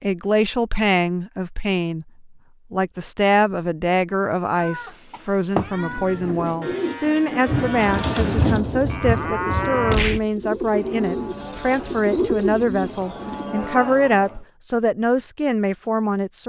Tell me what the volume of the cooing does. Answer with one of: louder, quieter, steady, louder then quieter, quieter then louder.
quieter then louder.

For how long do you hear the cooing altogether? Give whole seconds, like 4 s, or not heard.
8 s.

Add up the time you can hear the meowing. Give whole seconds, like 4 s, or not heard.
2 s.